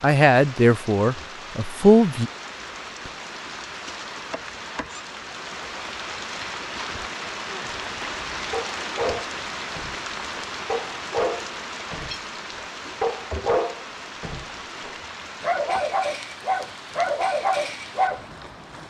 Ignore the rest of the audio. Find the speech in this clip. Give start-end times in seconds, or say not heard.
0.0-2.3.